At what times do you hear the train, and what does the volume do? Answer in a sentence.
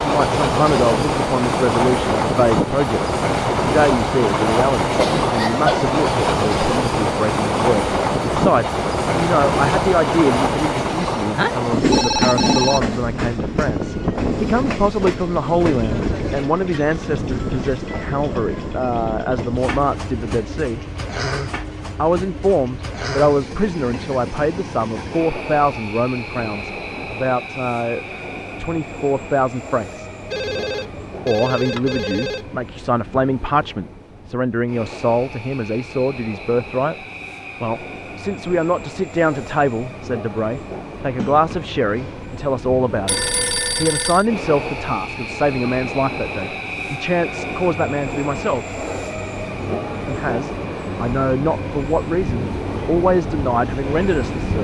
The train can be heard from 0.0 to 54.5 s, getting quieter then louder.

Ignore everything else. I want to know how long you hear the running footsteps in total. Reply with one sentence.
The running footsteps can't be heard in this clip.